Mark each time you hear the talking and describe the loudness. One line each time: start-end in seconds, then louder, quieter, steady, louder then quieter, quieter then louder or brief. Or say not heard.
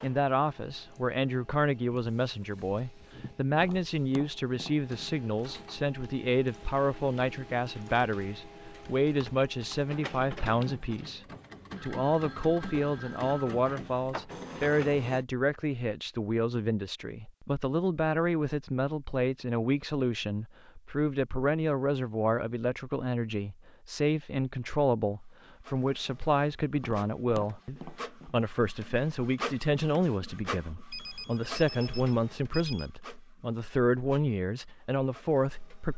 0.0-35.9 steady.